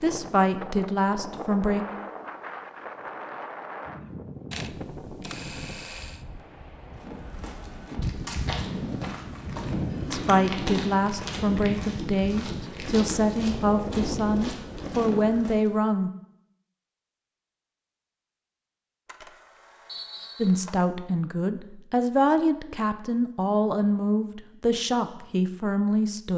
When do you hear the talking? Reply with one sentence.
You can hear the talking from 0.0 to 1.9 s, from 10.1 to 16.1 s and from 20.4 to 26.3 s.